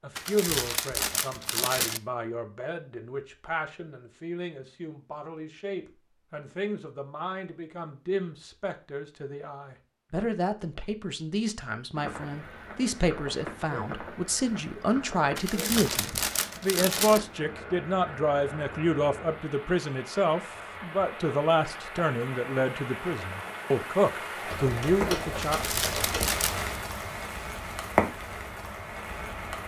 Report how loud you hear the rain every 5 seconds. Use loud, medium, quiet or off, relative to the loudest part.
off, off, medium, medium, medium, loud.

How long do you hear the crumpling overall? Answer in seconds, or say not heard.
5 s.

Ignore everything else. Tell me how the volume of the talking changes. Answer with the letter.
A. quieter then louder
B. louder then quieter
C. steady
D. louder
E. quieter
D.